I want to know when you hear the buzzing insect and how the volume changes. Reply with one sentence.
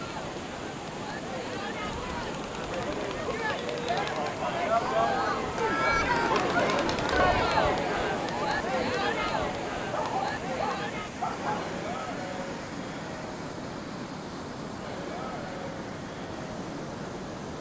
You can't hear the buzzing insect here.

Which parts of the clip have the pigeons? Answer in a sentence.
You can't hear the pigeons here.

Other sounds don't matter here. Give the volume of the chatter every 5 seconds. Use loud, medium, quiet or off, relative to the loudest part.
medium, loud, medium, quiet.